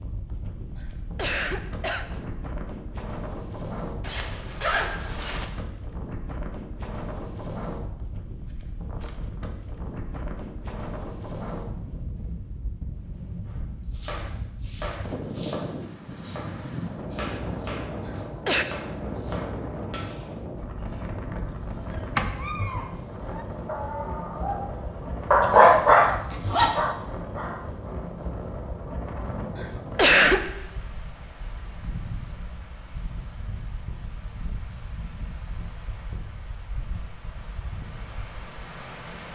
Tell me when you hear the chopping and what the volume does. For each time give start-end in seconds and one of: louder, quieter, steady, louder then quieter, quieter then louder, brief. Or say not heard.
13.4-22.2 quieter.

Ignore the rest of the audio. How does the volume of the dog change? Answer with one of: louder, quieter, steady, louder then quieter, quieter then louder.
louder then quieter.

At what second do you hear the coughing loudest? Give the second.
30 s.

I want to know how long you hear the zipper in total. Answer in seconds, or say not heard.
3 s.